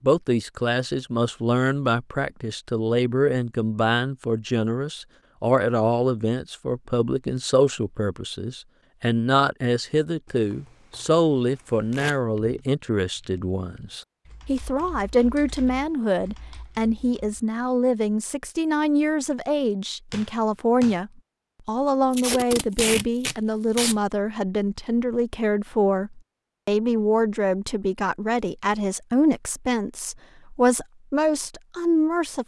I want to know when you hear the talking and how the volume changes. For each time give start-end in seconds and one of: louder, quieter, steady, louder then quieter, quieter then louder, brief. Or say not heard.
0.0-32.4 steady.